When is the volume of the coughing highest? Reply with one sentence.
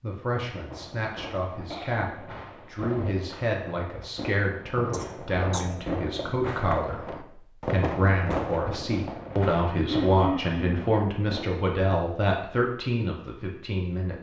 The loudest moment of the coughing is at 10 seconds.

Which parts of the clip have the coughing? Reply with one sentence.
The coughing can be heard from 1.7 to 2.1 s, from 4.9 to 5.8 s and from 9.8 to 10.8 s.